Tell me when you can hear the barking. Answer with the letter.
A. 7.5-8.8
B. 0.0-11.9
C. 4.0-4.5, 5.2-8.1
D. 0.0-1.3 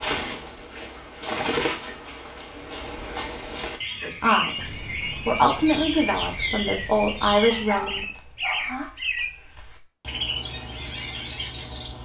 A.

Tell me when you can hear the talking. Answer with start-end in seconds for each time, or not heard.
4.0-4.5, 5.2-8.1.